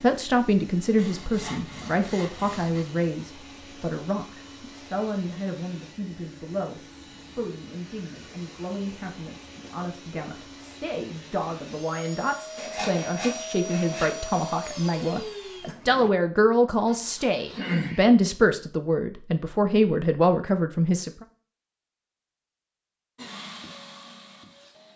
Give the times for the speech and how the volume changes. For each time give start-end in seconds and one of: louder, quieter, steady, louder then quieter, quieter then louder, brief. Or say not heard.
0.0-21.2 quieter then louder.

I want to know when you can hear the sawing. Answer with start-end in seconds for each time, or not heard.
0.9-2.9, 12.6-14.2, 16.9-18.1.